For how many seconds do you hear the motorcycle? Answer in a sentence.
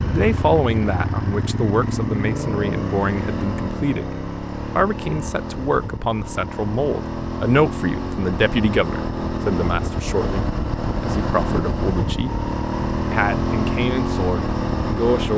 The motorcycle can be heard for 15 seconds in total.